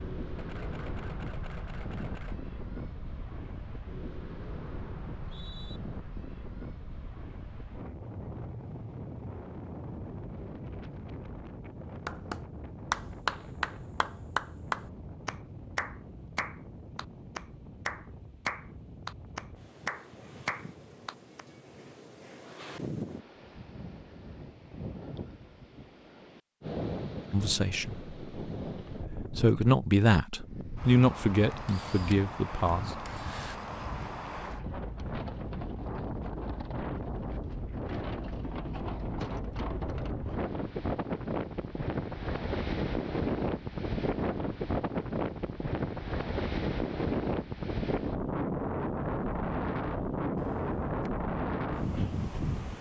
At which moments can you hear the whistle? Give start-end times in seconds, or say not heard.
5.0-5.8.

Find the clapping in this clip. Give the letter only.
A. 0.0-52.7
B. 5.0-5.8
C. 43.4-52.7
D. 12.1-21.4
D.